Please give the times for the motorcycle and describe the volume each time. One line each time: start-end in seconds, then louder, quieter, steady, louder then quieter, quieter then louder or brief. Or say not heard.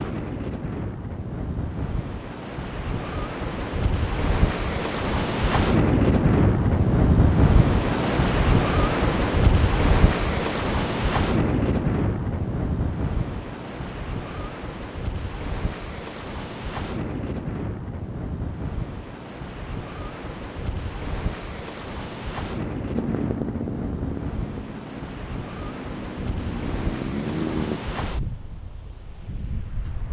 22.9-27.8 quieter then louder.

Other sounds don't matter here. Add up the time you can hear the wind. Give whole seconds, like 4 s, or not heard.
30 s.